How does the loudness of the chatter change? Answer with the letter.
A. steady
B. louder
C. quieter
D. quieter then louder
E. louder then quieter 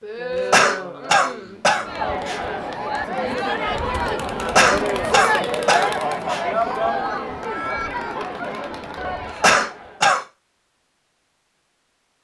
E.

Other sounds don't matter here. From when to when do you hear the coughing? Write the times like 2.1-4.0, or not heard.
0.5-2.4, 4.5-6.4, 9.4-10.2.